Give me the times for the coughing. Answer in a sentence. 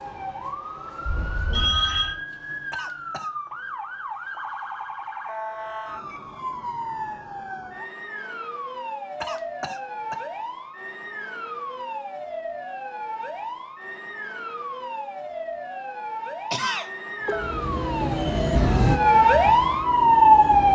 You can hear the coughing from 2.7 to 3.3 s, from 9.2 to 10.2 s and from 16.5 to 17.6 s.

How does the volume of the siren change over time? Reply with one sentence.
The volume of the siren goes up.